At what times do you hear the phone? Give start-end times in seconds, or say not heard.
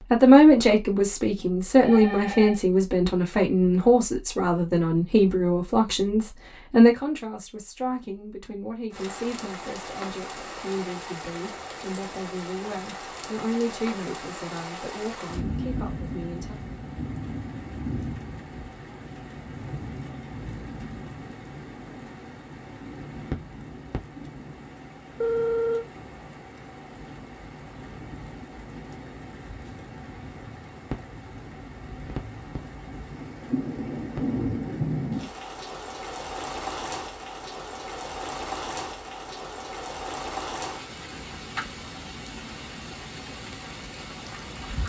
1.9-2.6, 25.2-25.9.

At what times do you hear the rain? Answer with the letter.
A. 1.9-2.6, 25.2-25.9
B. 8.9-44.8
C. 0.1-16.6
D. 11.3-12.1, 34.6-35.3
B.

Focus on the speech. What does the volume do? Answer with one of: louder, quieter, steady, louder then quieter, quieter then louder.
quieter.